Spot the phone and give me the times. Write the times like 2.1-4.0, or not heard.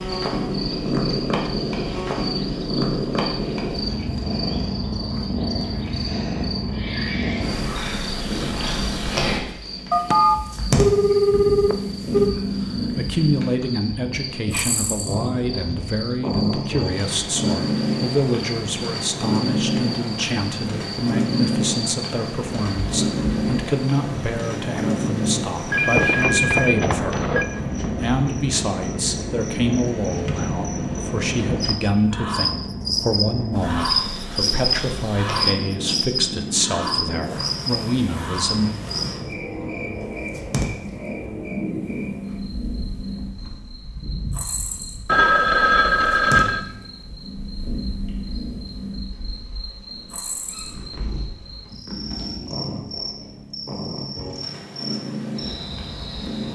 9.9-12.3, 25.7-27.4, 45.0-46.6.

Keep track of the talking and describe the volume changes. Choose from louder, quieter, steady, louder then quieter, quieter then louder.
steady.